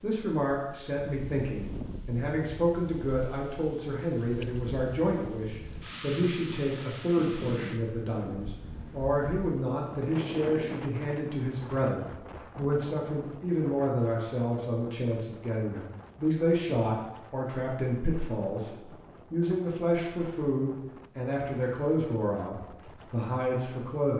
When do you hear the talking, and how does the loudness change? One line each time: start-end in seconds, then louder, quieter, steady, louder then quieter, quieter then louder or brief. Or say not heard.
0.0-24.1 steady.